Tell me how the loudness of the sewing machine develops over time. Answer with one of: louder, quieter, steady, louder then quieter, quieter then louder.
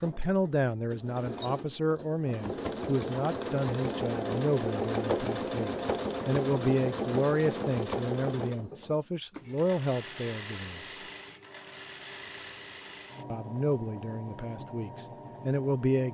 louder then quieter.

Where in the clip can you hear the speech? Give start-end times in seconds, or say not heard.
0.0-10.9, 13.3-16.0.